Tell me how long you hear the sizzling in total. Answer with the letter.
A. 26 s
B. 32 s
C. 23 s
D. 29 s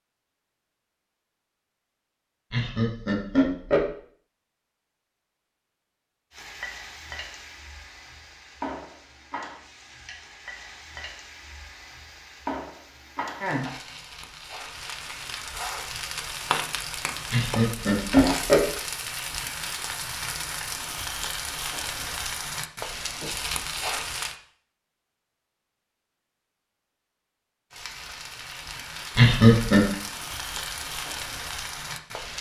C.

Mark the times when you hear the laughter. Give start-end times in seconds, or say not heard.
2.5-3.9, 17.3-18.6, 29.1-29.8.